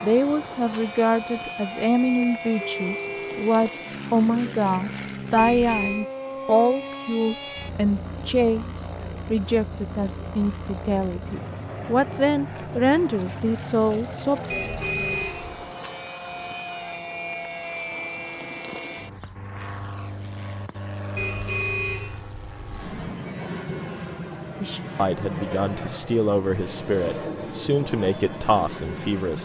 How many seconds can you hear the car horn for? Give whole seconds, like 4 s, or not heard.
4 s.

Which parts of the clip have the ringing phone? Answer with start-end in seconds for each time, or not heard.
2.6-3.5.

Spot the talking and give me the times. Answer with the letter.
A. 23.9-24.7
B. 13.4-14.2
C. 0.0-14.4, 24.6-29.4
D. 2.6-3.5
C.